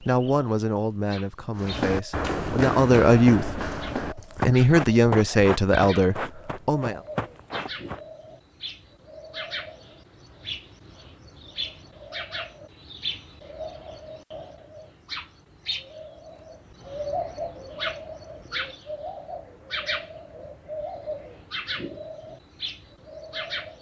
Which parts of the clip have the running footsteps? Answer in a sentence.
The running footsteps can be heard from 1.6 to 8.0 s.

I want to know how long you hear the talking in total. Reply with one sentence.
You can hear the talking for 7 seconds altogether.